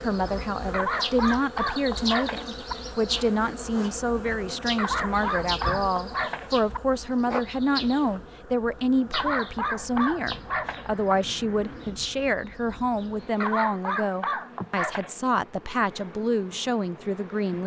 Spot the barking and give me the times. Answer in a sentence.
You can hear the barking from 0.7 to 2.8 s, from 4.8 to 6.8 s, from 9.1 to 11.2 s and from 13.4 to 15.2 s.